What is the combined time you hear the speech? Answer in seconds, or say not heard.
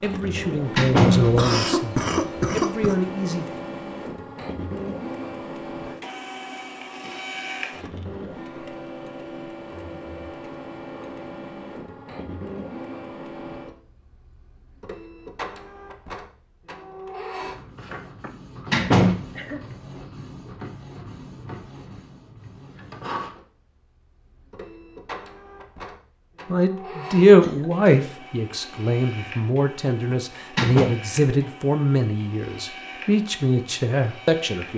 12 s.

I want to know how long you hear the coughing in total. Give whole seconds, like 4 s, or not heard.
4 s.